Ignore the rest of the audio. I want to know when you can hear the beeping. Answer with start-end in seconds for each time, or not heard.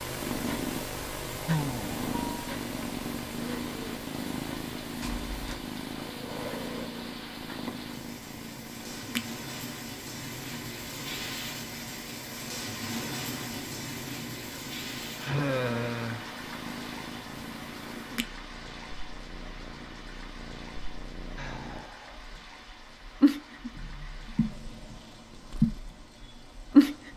5.0-5.7.